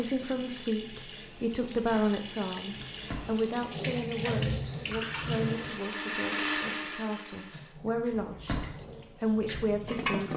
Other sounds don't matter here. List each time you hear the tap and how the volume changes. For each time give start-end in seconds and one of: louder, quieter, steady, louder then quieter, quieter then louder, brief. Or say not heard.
0.0-5.8 louder
7.5-10.3 brief.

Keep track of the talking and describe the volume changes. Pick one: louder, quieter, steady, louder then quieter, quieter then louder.
quieter then louder.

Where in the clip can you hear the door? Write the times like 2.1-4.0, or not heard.
2.9-3.4, 8.1-8.8.